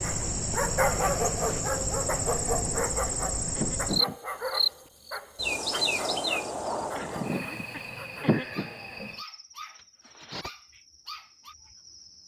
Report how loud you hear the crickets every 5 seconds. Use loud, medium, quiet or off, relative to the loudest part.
loud, loud, quiet.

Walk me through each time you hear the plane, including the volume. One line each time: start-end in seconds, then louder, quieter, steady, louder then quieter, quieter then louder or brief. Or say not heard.
not heard.